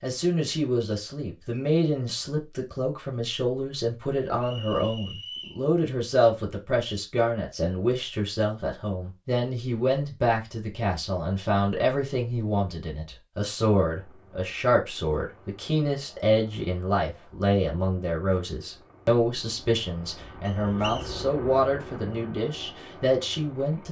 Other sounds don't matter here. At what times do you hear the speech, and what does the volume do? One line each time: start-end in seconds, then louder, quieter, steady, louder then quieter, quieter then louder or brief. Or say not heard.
0.0-23.8 steady.